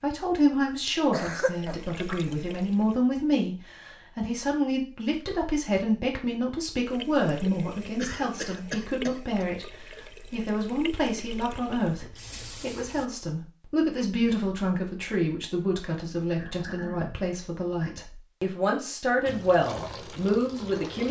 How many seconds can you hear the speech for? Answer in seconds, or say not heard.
20 s.